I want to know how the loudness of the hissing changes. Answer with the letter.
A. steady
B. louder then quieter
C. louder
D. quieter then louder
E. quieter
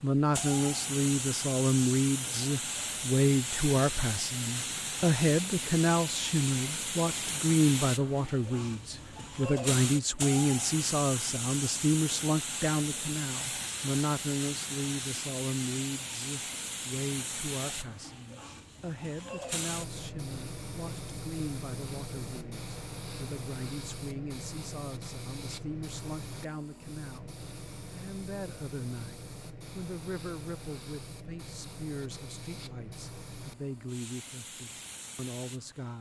E.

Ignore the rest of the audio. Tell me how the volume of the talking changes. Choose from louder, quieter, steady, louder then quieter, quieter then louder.
quieter.